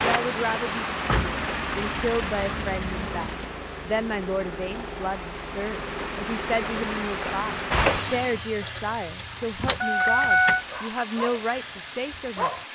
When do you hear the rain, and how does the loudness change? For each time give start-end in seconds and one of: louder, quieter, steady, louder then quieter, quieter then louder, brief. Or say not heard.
0.0-8.6 quieter then louder.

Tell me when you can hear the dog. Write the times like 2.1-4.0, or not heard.
10.6-12.7.